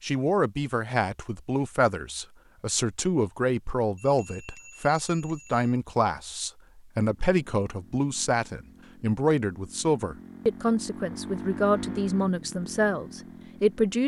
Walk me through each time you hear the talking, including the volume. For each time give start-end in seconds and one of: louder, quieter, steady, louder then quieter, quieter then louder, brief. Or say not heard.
0.0-14.0 steady.